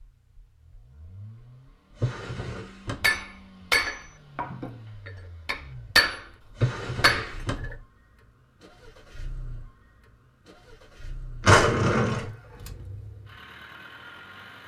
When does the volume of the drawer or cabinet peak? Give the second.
12 s.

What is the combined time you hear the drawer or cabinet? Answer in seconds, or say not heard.
3 s.